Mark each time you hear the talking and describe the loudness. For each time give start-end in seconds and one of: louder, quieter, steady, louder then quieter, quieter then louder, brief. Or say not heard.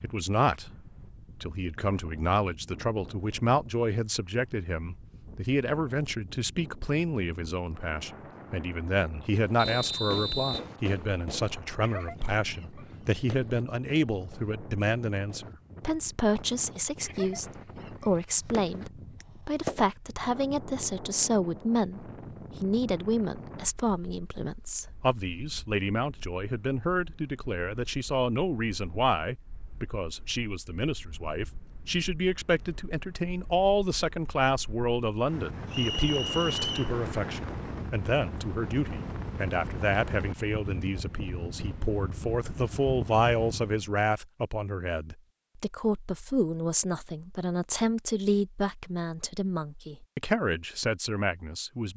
0.0-0.7 brief
1.4-51.9 steady.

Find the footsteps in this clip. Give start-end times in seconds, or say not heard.
not heard.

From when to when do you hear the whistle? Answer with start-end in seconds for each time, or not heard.
9.6-10.7, 35.7-37.0.